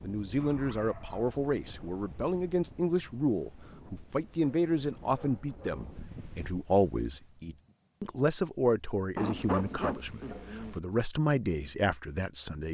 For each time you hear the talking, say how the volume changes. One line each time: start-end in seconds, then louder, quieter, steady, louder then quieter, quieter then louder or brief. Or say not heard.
0.0-12.6 steady.